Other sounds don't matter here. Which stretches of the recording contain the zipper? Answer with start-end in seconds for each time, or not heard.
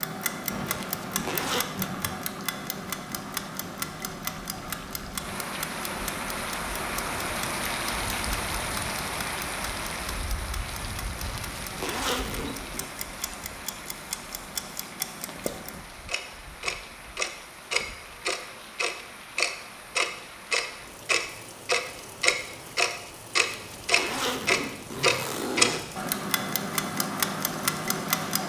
0.8-1.6, 11.2-12.9, 23.4-26.1.